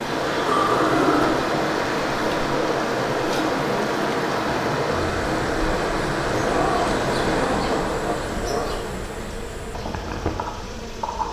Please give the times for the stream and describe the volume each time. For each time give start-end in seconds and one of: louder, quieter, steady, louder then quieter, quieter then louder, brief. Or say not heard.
0.0-11.2 quieter.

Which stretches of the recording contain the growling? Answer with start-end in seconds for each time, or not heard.
0.5-1.4, 6.4-8.8.